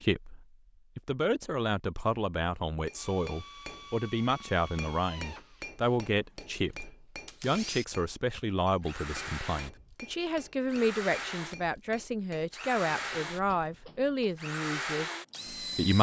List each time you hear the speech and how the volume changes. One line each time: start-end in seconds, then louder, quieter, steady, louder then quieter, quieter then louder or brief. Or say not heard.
0.0-15.9 steady.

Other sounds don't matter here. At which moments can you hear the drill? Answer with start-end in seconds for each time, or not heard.
3.0-15.9.